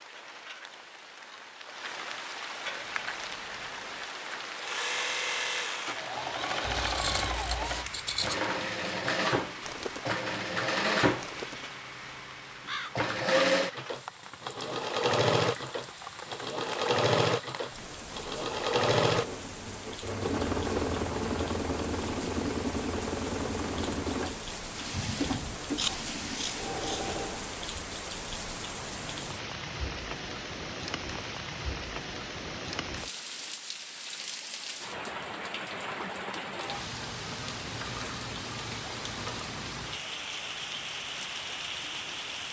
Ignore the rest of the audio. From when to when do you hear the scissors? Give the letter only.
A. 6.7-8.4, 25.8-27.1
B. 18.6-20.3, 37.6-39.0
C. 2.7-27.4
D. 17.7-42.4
A.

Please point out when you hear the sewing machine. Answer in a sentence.
The sewing machine can be heard from 2.7 to 27.4 s.